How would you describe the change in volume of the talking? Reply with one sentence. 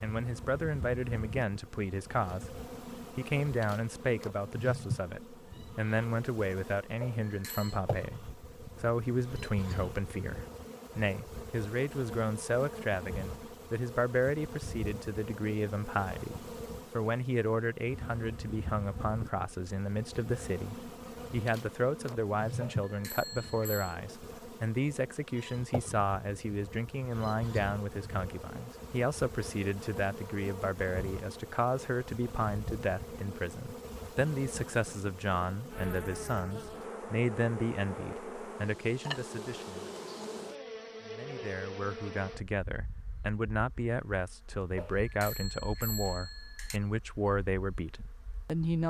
The loudness of the talking stays about the same.